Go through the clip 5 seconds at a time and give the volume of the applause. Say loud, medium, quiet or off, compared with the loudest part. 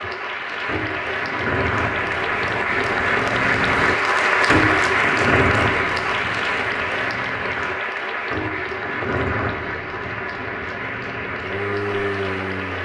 loud, loud, medium.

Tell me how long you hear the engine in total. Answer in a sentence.
The engine can be heard for 13 seconds in total.